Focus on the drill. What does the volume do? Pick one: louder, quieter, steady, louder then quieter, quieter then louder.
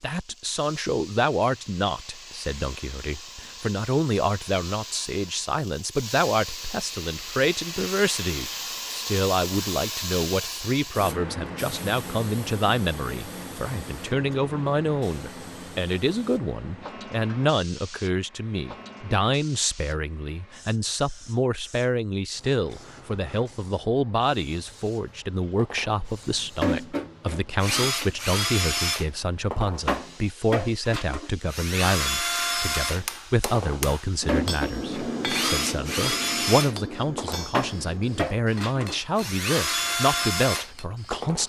steady.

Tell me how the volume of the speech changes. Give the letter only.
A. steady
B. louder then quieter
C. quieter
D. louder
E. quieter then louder
A.